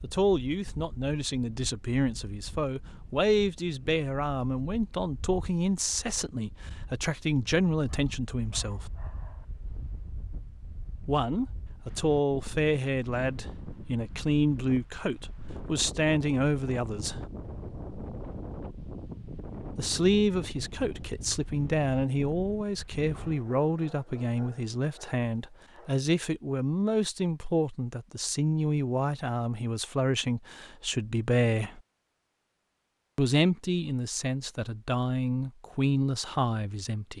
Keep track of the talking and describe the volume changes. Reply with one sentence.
The volume of the talking stays about the same.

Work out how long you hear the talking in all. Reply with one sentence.
You can hear the talking for 31 seconds altogether.